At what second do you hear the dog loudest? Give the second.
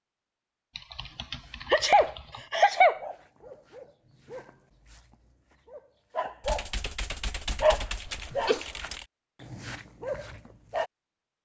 8 s.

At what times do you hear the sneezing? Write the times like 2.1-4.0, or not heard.
1.7-3.0, 8.1-8.7.